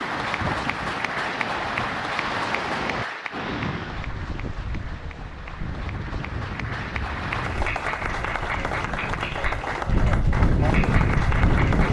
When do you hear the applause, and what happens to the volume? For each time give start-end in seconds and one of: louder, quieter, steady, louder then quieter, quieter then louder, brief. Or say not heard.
0.0-11.8 quieter then louder.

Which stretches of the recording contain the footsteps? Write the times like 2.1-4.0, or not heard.
not heard.